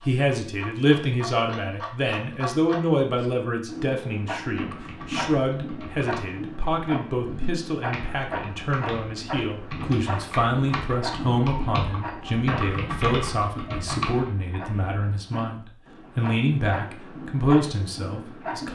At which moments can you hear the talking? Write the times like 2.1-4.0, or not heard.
0.0-18.7.